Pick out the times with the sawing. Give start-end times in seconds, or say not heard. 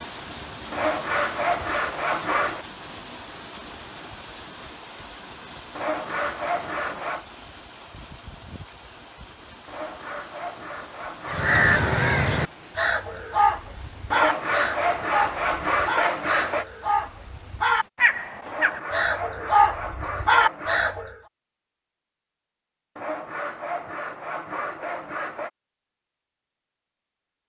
0.7-2.6, 5.8-7.2, 9.7-11.5, 14.1-16.6, 18.4-21.0, 22.9-25.5.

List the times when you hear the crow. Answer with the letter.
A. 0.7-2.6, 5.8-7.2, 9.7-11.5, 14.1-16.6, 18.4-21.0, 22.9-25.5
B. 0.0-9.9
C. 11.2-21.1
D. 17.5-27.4
C.